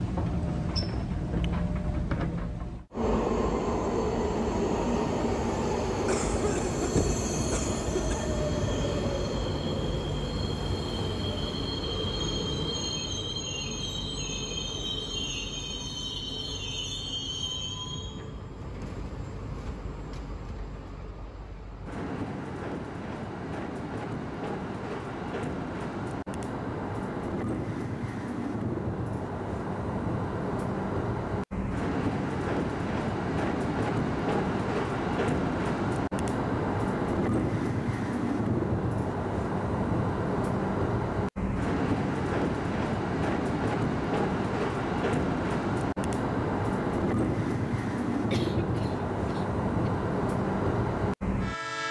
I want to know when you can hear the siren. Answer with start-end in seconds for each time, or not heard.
not heard.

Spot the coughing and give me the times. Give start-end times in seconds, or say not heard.
6.0-8.3, 48.3-49.9.